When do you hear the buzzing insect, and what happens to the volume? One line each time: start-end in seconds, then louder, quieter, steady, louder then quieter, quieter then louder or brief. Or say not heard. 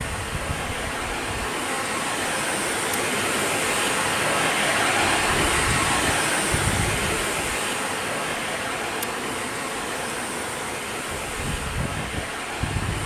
0.0-13.0 steady.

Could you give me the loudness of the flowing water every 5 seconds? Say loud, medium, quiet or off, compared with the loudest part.
loud, loud, medium.